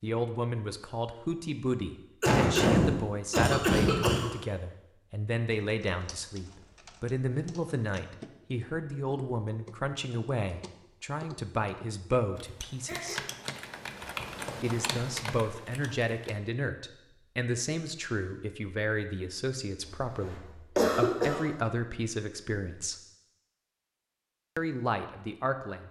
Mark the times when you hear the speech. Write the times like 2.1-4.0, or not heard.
0.0-13.2, 14.6-23.0, 24.6-25.8.